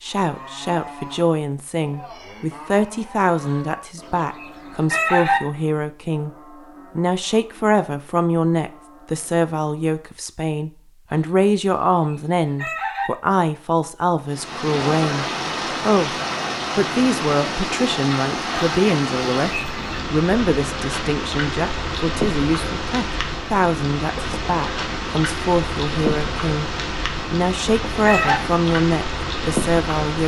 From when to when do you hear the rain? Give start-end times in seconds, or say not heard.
14.2-30.2.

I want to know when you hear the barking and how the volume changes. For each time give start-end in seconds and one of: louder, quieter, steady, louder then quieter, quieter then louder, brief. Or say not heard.
not heard.